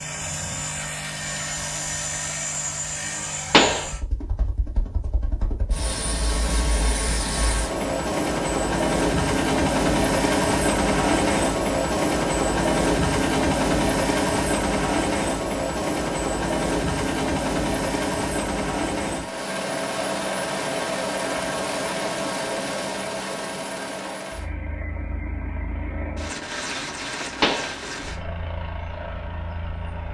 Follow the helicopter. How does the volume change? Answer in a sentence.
The volume of the helicopter goes up, then down.